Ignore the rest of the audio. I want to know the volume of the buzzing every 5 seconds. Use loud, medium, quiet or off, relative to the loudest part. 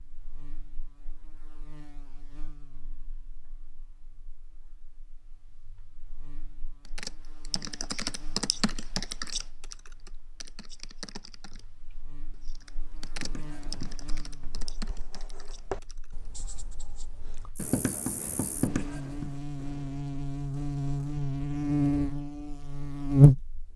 quiet, quiet, quiet, quiet, loud.